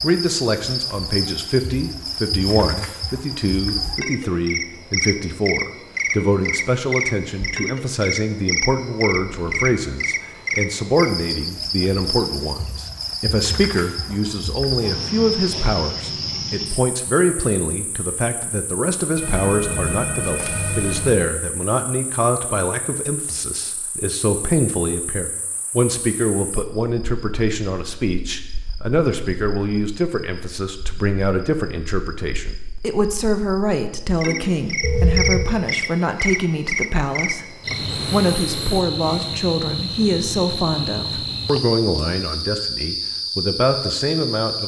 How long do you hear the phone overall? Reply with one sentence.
You can hear the phone for 3 seconds altogether.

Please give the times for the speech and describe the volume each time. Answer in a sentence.
The speech can be heard from 0.0 to 44.6 s, at a steady volume.